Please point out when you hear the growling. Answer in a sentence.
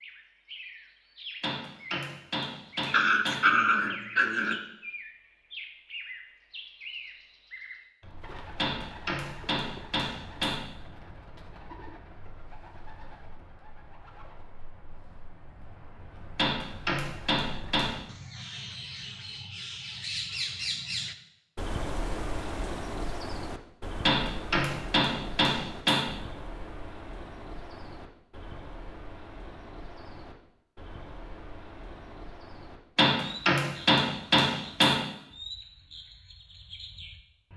The growling can be heard from 2.9 to 4.6 s.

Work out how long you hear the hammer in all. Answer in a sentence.
You can hear the hammer for 10 seconds altogether.